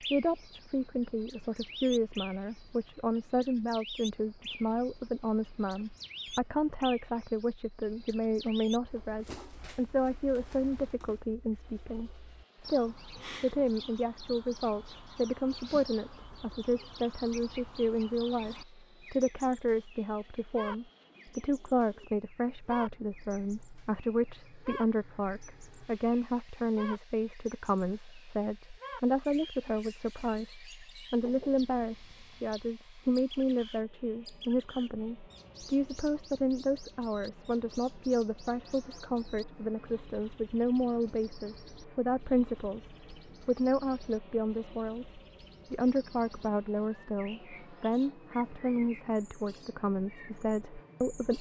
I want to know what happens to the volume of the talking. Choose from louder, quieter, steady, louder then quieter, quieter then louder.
steady.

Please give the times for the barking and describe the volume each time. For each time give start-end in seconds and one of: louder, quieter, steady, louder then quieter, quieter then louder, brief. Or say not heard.
not heard.